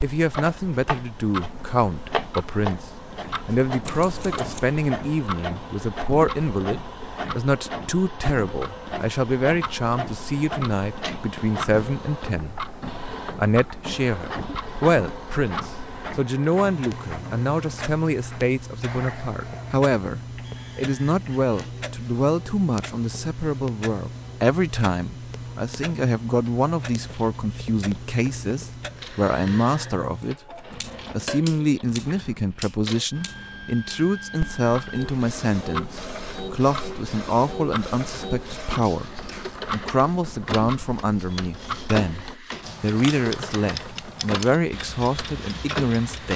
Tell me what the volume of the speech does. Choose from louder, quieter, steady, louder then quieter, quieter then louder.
steady.